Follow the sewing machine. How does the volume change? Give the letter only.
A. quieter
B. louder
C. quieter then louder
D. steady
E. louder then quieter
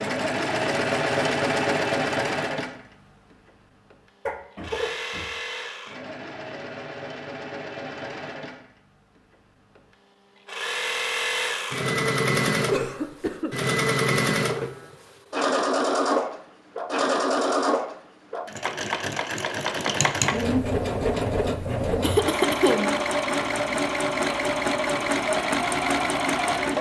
C.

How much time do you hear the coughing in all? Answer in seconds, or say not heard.
3 s.